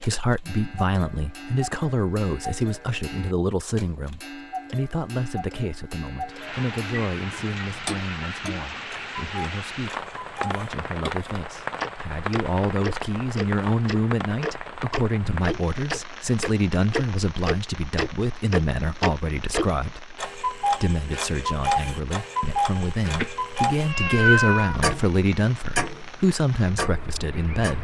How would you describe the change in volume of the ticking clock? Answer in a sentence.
The volume of the ticking clock goes up.